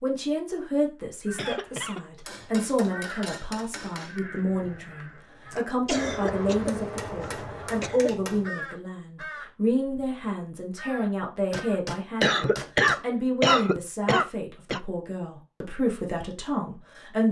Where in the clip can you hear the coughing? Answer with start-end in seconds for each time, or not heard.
1.4-2.0, 5.8-8.1, 12.2-14.8.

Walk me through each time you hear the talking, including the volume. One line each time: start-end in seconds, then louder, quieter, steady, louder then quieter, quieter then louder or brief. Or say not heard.
0.0-17.2 steady.